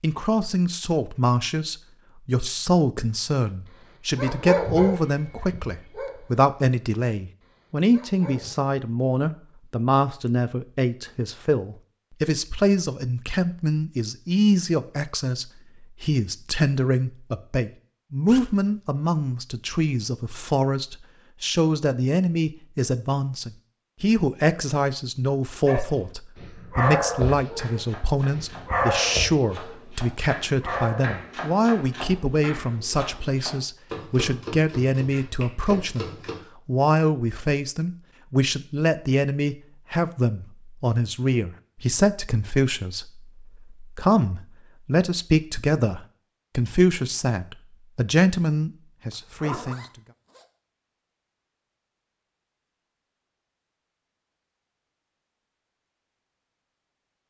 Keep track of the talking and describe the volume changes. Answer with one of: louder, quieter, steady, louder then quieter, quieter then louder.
steady.